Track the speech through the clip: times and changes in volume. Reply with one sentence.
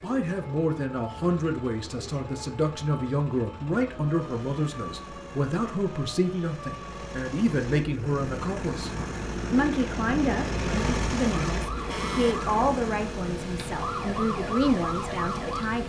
The speech can be heard from 0.0 to 15.8 s, at a steady volume.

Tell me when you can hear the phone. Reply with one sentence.
You can't hear the phone here.